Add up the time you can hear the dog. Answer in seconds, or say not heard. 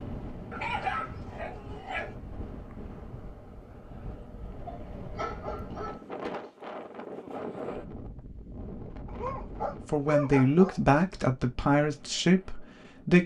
5 s.